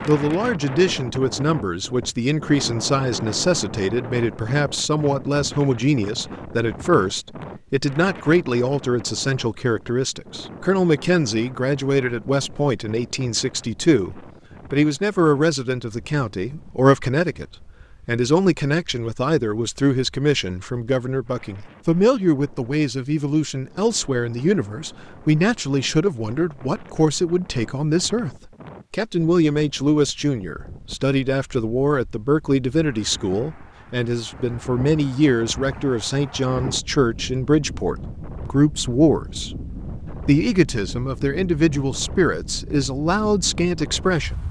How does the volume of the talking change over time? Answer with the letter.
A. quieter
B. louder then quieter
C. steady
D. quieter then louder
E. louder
C.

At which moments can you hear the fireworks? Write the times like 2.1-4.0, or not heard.
not heard.